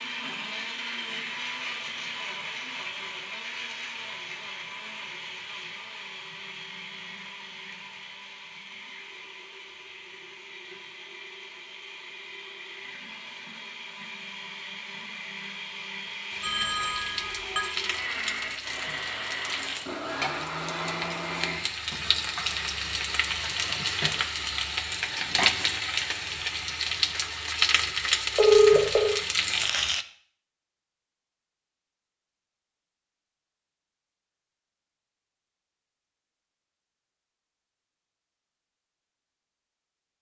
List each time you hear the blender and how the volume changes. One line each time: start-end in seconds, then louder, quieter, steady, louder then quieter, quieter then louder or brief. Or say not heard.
0.0-21.6 quieter then louder.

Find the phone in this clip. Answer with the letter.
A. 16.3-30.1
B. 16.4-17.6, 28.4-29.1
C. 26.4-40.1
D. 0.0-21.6
B.